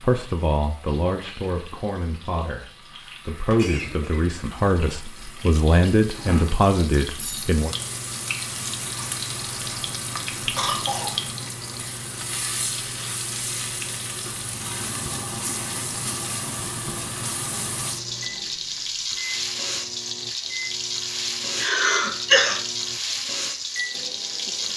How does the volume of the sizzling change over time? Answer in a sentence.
The volume of the sizzling goes up.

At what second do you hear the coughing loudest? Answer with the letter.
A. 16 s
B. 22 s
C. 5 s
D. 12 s
B.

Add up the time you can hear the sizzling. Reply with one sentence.
The sizzling can be heard for 25 seconds in total.